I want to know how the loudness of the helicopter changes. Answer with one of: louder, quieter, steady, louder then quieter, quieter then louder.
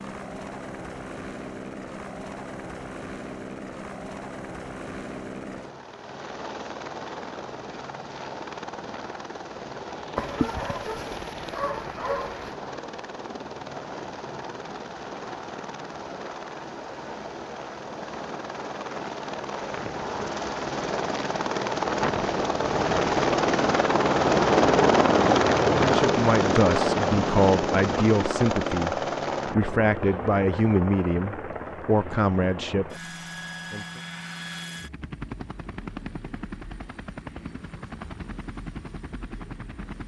louder then quieter.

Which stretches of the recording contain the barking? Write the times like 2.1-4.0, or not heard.
10.2-12.6.